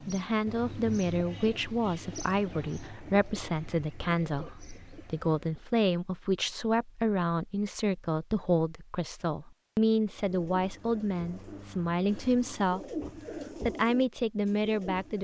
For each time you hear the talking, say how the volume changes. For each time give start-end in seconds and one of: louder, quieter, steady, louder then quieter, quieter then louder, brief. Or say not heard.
0.1-15.1 steady.